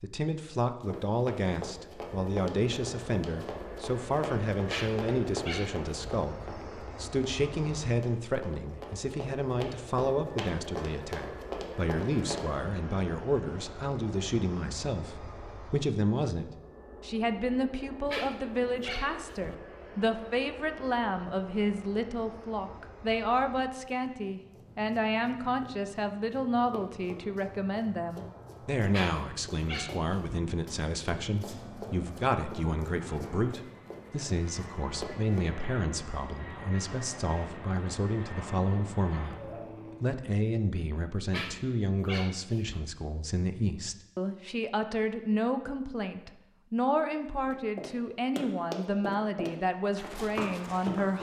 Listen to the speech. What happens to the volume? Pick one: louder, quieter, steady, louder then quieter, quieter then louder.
steady.